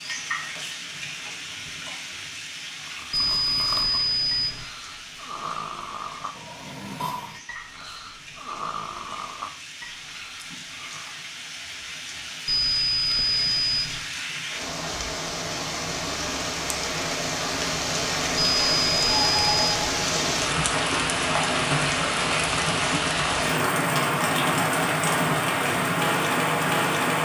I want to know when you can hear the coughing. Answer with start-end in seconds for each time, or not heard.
not heard.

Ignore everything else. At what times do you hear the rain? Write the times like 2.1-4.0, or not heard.
0.0-27.2.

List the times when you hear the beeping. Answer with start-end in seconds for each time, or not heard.
3.1-4.7, 12.4-14.0, 18.4-19.9.